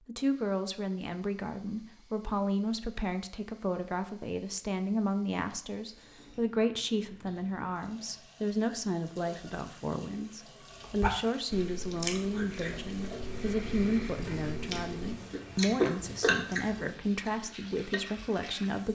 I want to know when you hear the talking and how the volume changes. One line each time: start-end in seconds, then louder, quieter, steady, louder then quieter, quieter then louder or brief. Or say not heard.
0.1-18.9 steady.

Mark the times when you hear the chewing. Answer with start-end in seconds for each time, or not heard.
10.8-18.0.